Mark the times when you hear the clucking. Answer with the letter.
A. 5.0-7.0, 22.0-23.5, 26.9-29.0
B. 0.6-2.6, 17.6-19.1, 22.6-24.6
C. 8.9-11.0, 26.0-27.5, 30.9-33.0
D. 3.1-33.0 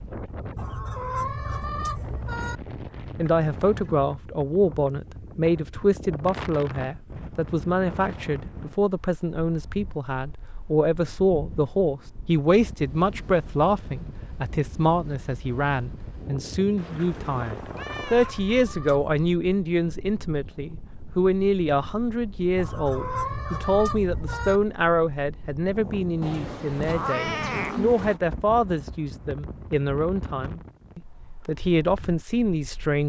B.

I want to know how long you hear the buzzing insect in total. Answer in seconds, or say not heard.
not heard.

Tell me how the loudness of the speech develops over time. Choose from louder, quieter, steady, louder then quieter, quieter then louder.
steady.